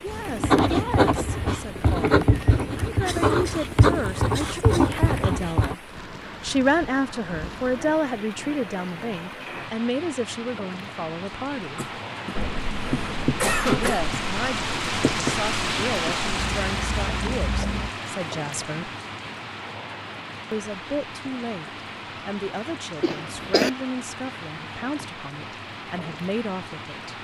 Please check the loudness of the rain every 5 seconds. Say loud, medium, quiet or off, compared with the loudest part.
medium, medium, loud, loud, medium, medium.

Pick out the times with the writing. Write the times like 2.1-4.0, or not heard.
0.1-5.8, 12.3-17.9.